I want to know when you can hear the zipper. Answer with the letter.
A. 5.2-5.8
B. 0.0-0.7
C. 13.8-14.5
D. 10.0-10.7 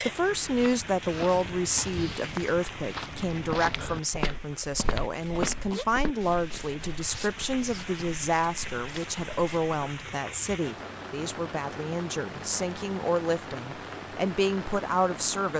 A.